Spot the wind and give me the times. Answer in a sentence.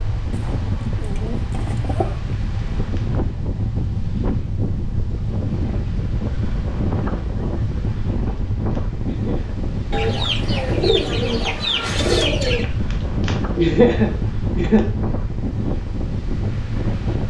You can hear the wind from 0.0 to 17.2 s.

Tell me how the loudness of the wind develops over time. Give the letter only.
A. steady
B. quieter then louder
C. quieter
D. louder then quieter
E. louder
A.